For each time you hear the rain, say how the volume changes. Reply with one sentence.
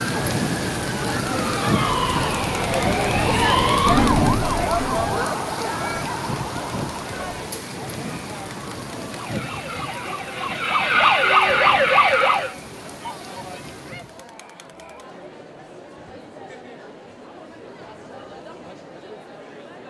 The rain can be heard from 0.0 to 14.2 s, getting quieter.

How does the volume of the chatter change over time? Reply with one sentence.
The loudness of the chatter goes down.